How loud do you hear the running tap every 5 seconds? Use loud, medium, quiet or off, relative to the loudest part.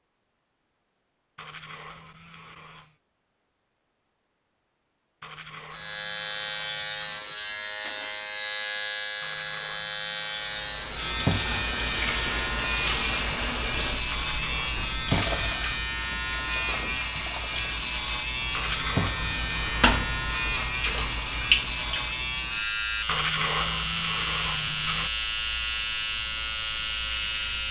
off, off, loud, loud, loud, off.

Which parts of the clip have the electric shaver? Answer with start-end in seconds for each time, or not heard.
5.7-27.6.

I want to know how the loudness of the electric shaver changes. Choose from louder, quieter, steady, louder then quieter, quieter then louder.
steady.